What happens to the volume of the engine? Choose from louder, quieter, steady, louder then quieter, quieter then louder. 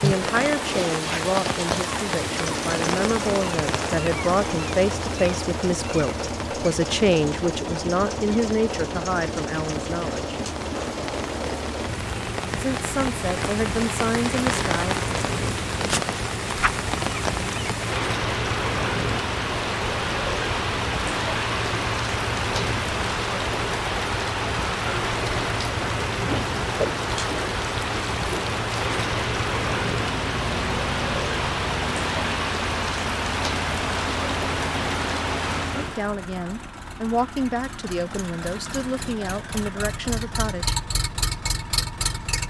steady.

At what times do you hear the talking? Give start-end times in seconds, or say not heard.
0.0-10.3, 12.6-15.1, 35.8-40.8.